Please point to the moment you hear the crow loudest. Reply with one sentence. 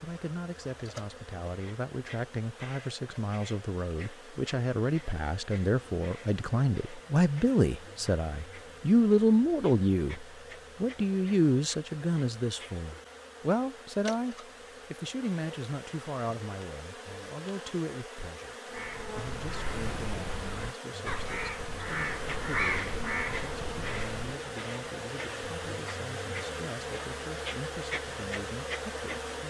The volume of the crow peaks at 23 seconds.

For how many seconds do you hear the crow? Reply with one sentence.
You can hear the crow for 6 seconds altogether.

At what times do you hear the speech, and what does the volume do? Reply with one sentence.
You can hear the speech from 0.0 to 29.4 s, getting louder then quieter.